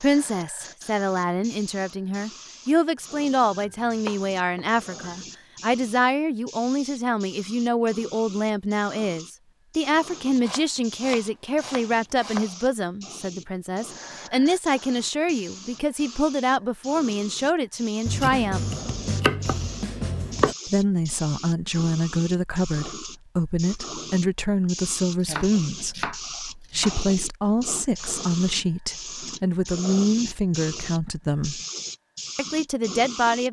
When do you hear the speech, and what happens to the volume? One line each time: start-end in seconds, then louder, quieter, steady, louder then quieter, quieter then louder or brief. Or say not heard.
0.0-18.7 steady
20.6-31.6 steady
32.4-33.4 brief.